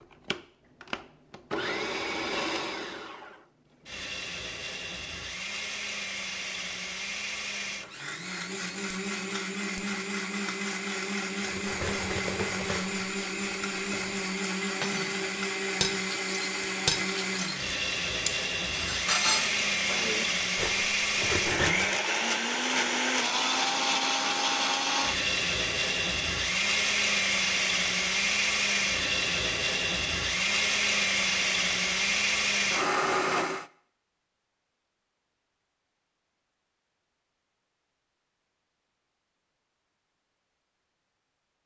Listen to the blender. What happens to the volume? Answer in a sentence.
The volume of the blender goes up.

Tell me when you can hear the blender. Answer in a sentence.
The blender can be heard from 0.0 to 33.6 s.